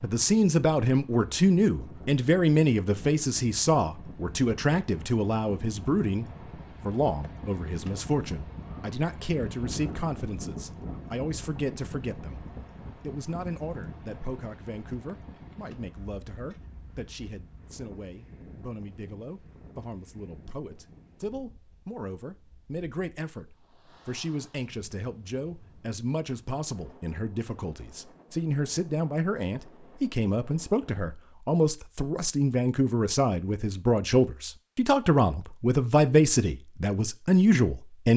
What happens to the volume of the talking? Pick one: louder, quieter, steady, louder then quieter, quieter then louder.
quieter then louder.